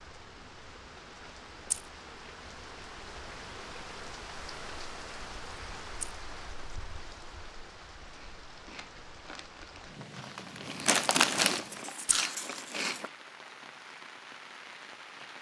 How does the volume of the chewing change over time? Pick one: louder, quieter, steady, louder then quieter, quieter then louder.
louder then quieter.